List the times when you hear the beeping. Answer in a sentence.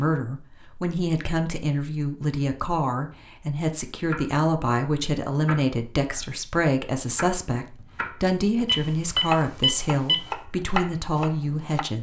You can hear the beeping from 8.7 to 10.2 s.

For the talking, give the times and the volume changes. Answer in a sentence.
You can hear the talking from 0.0 to 11.9 s, at a steady volume.